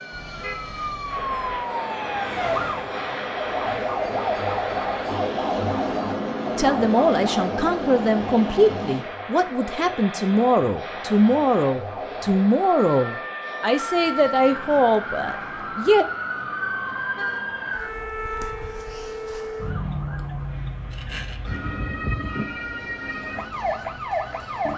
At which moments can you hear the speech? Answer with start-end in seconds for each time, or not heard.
6.5-16.1.